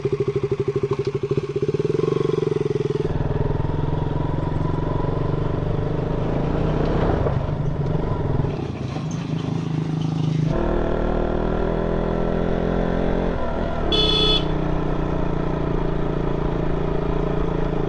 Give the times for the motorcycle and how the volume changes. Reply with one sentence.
You can hear the motorcycle from 0.0 to 17.8 s, at a steady volume.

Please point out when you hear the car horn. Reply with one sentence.
The car horn can be heard from 13.9 to 14.5 s.